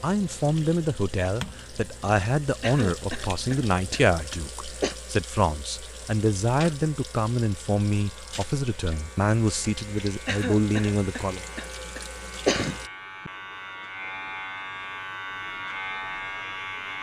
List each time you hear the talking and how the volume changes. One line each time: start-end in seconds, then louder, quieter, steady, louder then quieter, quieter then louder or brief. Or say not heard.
0.0-11.4 steady.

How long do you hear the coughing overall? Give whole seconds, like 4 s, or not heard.
5 s.